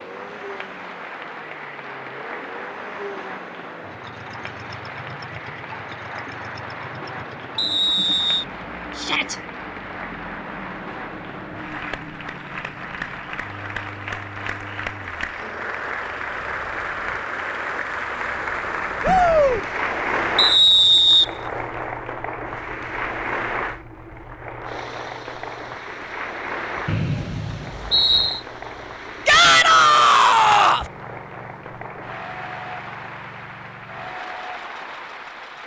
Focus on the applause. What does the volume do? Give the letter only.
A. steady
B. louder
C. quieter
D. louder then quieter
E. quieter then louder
D.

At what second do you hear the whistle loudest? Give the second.
21 s.